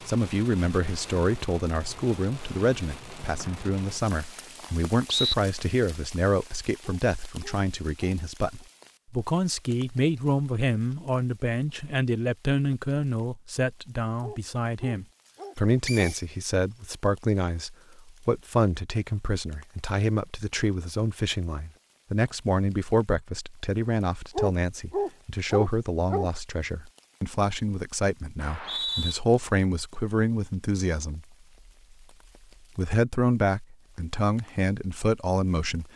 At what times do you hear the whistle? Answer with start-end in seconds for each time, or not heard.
3.4-5.3, 15.8-16.2, 28.4-29.1.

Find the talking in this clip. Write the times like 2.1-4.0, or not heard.
0.1-31.2, 32.8-35.9.